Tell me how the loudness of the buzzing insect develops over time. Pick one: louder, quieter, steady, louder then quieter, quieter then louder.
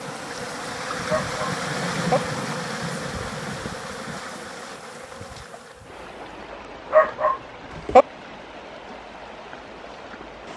quieter.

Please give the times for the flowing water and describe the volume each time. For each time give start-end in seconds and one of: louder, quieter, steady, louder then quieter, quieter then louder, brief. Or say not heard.
0.0-10.5 quieter.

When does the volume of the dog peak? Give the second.
8 s.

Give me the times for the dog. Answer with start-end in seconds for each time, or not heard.
1.1-2.2, 6.9-8.1.